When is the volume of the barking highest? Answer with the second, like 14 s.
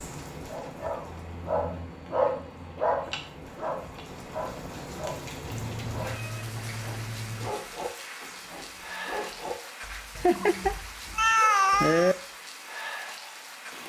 2 s.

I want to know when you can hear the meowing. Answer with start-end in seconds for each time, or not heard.
0.8-2.9, 5.5-7.5, 10.2-12.2.